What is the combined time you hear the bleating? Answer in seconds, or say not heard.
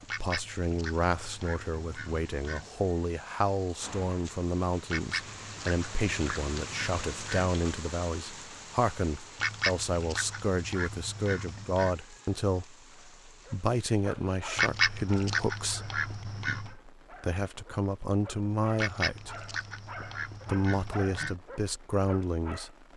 not heard.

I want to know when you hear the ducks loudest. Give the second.
15 s.